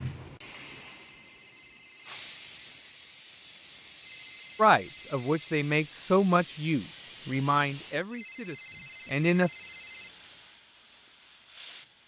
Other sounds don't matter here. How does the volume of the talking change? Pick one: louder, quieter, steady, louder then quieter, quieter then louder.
quieter.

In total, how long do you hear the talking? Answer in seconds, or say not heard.
5 s.